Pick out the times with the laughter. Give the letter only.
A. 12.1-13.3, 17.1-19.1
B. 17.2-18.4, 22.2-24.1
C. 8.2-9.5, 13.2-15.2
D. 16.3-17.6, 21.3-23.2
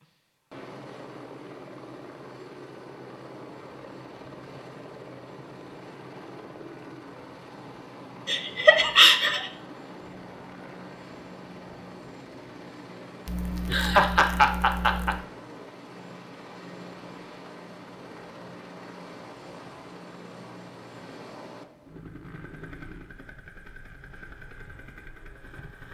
C.